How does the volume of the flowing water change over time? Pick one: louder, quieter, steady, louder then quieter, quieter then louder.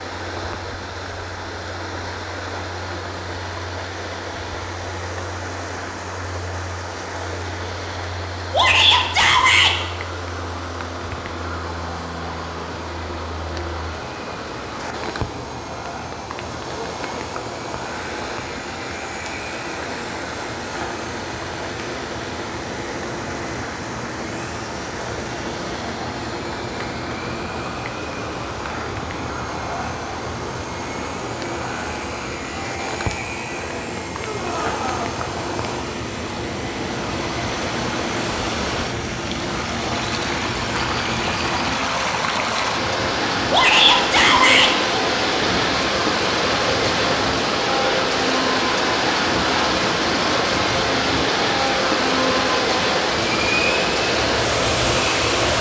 louder.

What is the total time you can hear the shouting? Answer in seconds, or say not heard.
3 s.